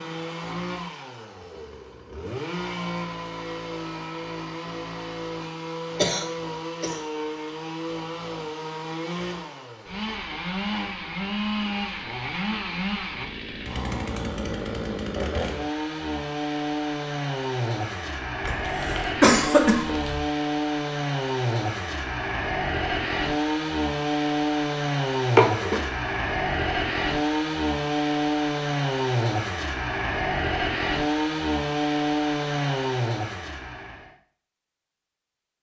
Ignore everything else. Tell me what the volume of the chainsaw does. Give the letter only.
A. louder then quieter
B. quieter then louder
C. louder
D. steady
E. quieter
C.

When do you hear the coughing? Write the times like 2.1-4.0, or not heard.
6.0-7.0, 18.4-20.2, 25.4-25.8.